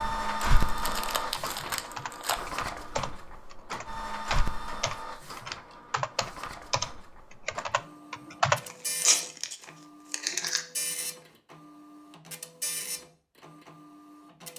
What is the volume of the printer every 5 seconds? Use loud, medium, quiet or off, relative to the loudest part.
loud, medium, medium.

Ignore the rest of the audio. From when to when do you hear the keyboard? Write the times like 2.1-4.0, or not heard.
1.2-8.6.